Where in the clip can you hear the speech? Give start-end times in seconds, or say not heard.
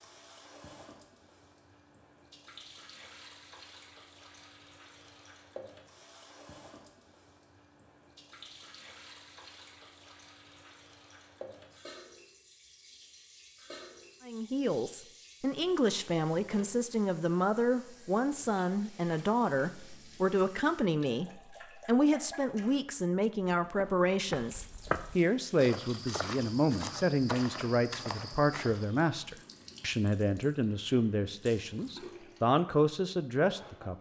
14.2-33.9.